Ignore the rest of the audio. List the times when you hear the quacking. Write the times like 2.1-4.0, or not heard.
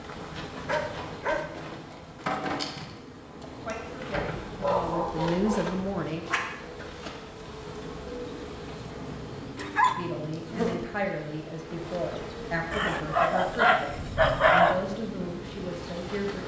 not heard.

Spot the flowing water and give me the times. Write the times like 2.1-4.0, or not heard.
not heard.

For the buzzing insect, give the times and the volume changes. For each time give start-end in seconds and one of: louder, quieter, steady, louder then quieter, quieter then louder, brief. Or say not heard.
0.0-16.4 steady.